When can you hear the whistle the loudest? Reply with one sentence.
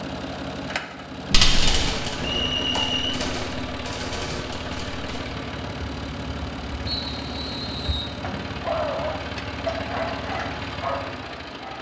The loudest moment of the whistle is at 3 seconds.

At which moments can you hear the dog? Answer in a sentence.
You can hear the dog from 8.6 to 11.7 s.